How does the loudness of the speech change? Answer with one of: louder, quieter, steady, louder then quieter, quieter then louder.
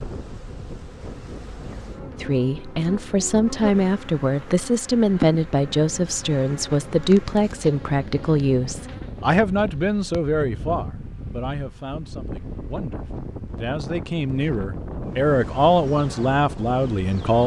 quieter then louder.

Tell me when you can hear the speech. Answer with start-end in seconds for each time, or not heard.
2.2-17.4.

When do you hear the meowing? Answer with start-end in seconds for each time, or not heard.
not heard.